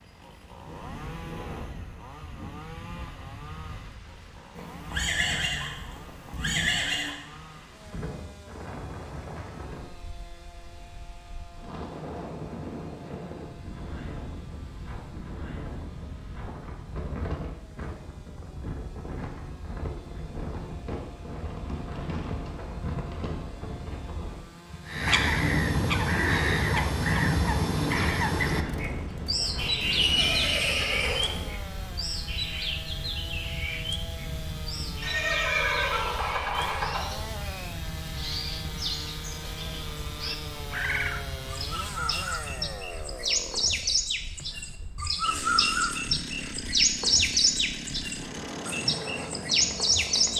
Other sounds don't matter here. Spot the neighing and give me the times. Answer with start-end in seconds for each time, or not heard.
4.5-7.2, 29.8-31.5, 35.0-37.0.